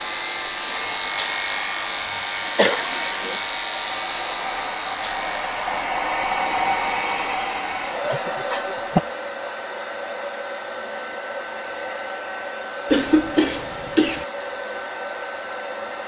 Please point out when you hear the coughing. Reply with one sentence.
You can hear the coughing from 2.5 to 3.4 s, from 8.1 to 9.0 s and from 12.9 to 14.2 s.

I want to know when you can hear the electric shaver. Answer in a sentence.
The electric shaver can be heard from 0.0 to 5.8 s.